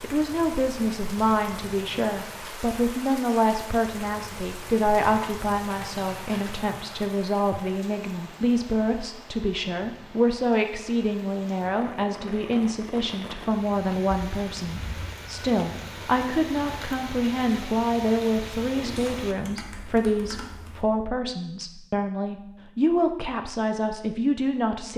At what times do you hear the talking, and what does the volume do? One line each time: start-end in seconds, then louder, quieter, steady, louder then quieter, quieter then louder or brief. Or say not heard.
0.0-24.9 steady.